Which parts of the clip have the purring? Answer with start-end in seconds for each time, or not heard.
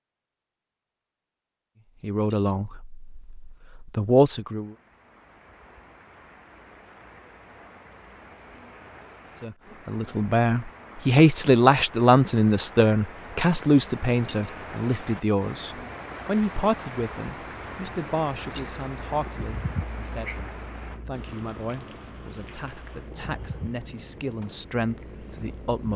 17.4-25.9.